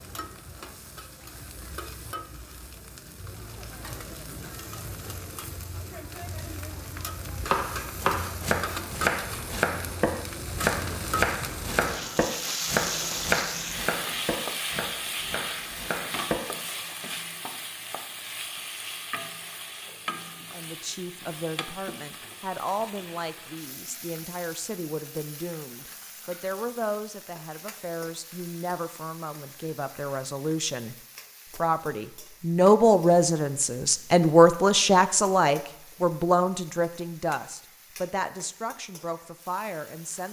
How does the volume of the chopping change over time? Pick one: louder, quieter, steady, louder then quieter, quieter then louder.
quieter.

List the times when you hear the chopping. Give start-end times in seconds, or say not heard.
7.2-16.4.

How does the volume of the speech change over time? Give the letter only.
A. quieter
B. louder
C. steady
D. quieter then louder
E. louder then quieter
E.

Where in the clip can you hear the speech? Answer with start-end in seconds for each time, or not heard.
20.5-30.9, 31.6-40.2.